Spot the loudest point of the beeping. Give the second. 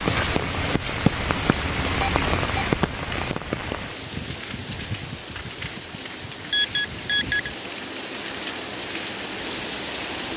7 s.